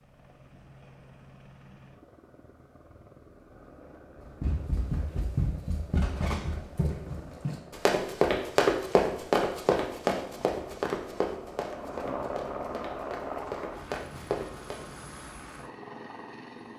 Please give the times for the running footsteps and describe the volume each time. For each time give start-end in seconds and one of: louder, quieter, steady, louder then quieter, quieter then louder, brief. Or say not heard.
4.4-14.8 louder then quieter.